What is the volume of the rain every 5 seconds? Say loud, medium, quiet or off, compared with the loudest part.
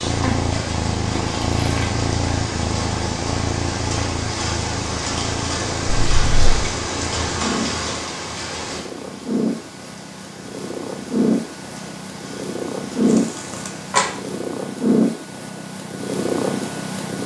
loud, loud, quiet, off.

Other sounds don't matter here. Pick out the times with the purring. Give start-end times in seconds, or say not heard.
0.0-17.2.